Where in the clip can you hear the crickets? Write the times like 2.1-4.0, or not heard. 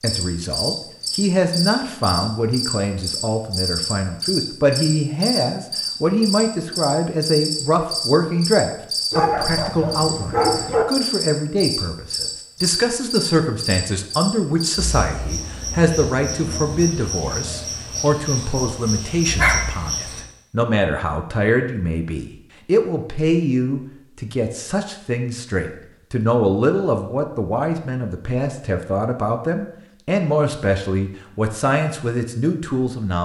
0.0-20.2.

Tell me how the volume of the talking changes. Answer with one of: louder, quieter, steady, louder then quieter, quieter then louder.
steady.